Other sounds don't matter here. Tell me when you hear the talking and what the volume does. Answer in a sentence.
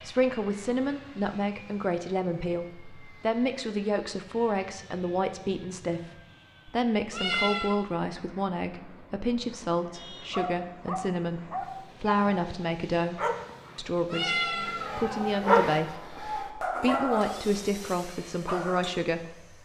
You can hear the talking from 0.0 to 19.5 s, at a steady volume.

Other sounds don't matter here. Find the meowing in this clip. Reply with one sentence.
The meowing can be heard from 7.1 to 7.8 s and from 14.1 to 15.4 s.